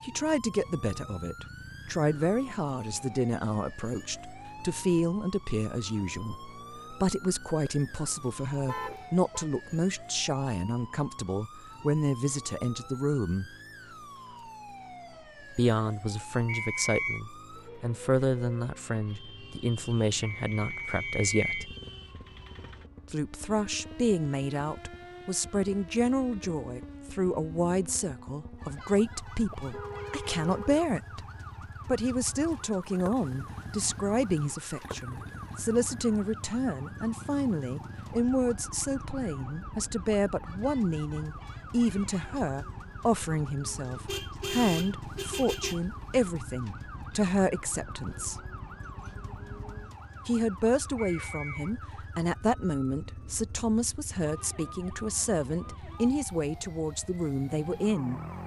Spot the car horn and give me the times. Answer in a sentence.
The car horn can be heard from 7.7 to 9.4 s, from 29.5 to 30.9 s and from 44.0 to 45.8 s.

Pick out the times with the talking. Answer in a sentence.
You can hear the talking from 0.0 to 13.5 s, from 15.6 to 21.7 s, from 23.1 to 31.2 s, from 31.9 to 48.4 s and from 50.2 to 58.2 s.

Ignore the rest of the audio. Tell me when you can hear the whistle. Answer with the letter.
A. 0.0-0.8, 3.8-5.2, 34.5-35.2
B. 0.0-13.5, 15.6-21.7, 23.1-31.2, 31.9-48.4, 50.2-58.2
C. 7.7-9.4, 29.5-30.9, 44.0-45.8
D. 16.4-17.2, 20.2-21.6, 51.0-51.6
D.